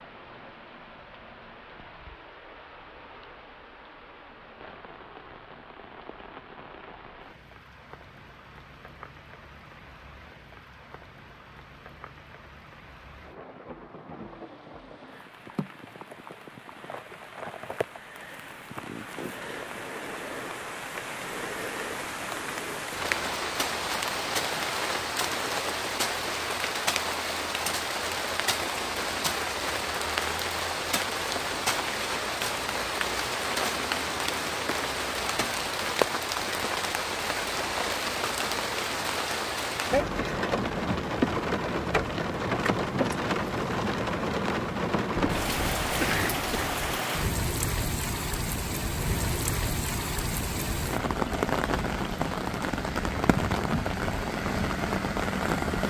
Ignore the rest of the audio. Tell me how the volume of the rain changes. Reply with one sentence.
The loudness of the rain goes up.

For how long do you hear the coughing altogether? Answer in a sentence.
You can hear the coughing for 2 seconds altogether.